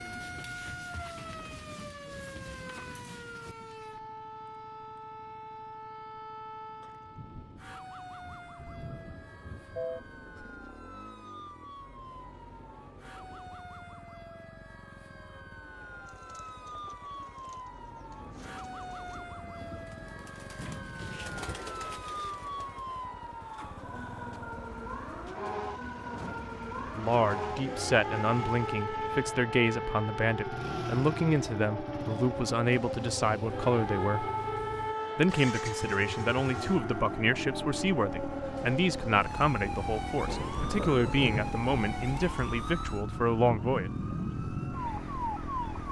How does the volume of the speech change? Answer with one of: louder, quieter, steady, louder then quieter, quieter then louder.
steady.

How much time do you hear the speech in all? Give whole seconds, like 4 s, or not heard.
16 s.